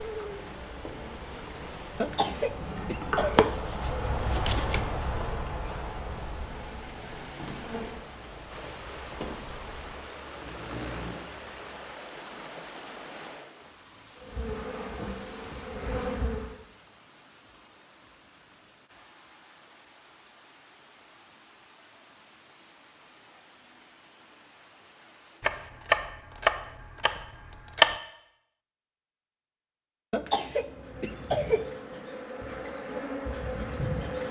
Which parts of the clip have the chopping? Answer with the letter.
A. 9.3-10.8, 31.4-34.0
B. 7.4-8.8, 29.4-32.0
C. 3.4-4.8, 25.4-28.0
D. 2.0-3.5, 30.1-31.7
C.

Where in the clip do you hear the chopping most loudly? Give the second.
28 s.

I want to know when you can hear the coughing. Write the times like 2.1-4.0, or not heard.
2.0-3.5, 30.1-31.7.